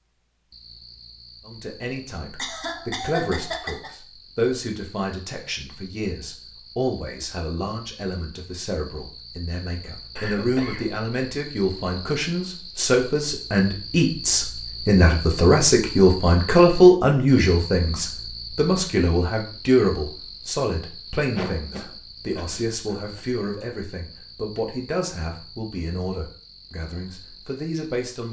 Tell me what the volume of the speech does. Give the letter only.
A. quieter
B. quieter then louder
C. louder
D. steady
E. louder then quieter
E.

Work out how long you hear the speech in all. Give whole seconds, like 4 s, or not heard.
27 s.